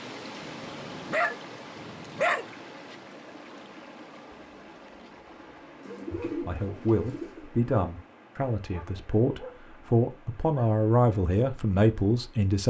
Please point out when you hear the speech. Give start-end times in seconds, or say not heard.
6.1-12.6.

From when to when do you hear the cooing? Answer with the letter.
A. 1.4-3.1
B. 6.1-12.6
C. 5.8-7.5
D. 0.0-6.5
C.